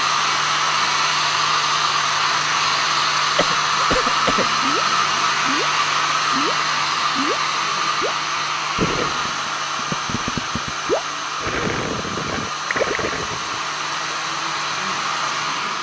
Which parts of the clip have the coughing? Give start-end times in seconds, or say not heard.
3.4-4.5.